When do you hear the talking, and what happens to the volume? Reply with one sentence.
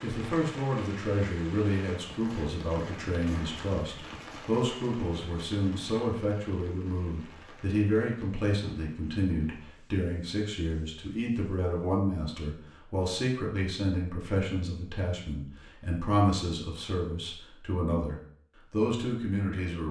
You can hear the talking from 0.0 to 19.8 s, at a steady volume.